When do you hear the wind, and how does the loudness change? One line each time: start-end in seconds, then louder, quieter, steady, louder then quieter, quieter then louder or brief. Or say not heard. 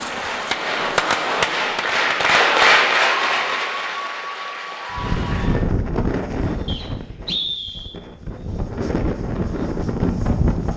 5.0-10.7 quieter then louder.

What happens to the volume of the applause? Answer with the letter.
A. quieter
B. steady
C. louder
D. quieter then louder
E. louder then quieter
E.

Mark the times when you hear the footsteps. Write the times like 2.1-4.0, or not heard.
not heard.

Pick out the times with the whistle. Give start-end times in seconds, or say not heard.
6.7-8.0.